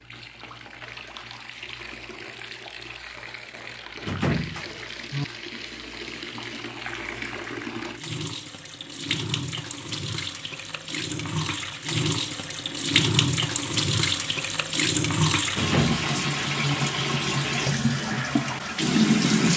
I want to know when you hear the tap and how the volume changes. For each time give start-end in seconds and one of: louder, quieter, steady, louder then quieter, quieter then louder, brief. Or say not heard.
0.0-19.5 louder.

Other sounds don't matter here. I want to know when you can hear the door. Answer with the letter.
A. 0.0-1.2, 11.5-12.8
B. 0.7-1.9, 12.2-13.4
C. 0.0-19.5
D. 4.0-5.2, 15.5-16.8
D.